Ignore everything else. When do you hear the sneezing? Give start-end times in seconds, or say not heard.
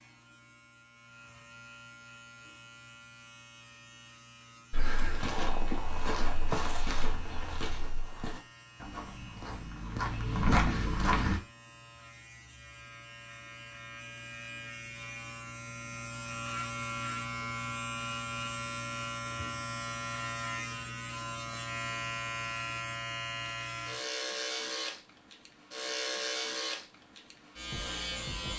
not heard.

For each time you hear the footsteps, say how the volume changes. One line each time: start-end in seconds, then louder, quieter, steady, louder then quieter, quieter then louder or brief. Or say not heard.
4.7-11.4 quieter then louder.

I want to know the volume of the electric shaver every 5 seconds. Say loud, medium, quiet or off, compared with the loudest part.
quiet, quiet, medium, loud, loud, loud.